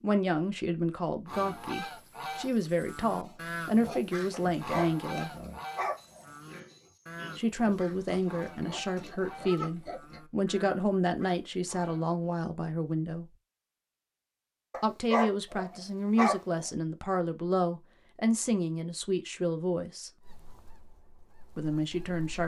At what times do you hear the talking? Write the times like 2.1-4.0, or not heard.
0.0-5.5, 7.3-13.3, 14.8-20.1, 21.6-22.4.